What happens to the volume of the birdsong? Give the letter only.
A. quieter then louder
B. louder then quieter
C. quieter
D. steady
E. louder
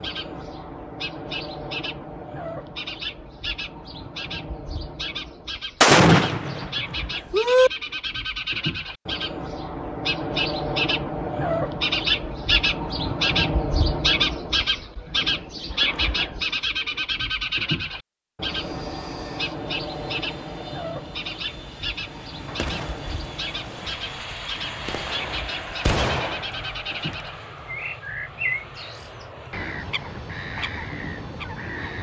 B.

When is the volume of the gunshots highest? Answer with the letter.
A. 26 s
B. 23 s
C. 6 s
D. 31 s
C.